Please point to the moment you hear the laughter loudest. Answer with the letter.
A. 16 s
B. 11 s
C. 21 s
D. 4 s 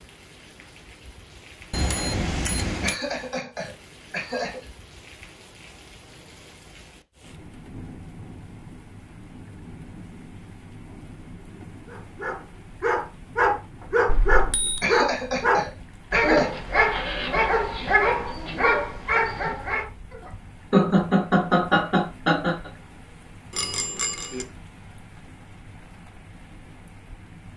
C.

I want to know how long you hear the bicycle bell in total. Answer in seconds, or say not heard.
3 s.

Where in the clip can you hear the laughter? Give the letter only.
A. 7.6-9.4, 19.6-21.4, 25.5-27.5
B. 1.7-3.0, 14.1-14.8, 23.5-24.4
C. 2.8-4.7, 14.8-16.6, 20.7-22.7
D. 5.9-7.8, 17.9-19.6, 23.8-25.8
C.